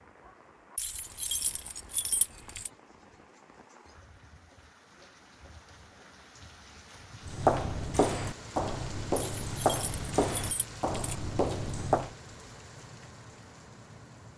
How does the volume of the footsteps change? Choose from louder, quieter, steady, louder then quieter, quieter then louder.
steady.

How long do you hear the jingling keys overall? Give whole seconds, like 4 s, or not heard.
4 s.